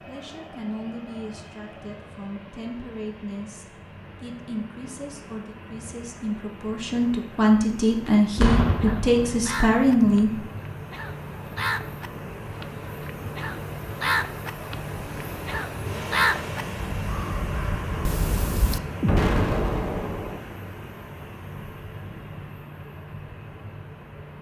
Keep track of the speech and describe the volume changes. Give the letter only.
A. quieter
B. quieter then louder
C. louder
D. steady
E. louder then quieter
C.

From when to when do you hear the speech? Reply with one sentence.
The speech can be heard from 0.0 to 10.3 s.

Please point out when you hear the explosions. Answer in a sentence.
You can hear the explosions from 8.3 to 9.4 s and from 19.0 to 20.4 s.